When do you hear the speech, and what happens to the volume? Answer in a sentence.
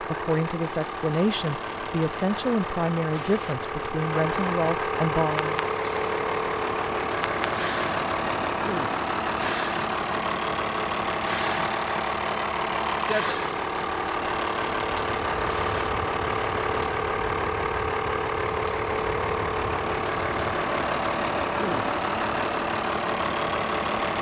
You can hear the speech from 0.0 to 5.7 s, at a steady volume.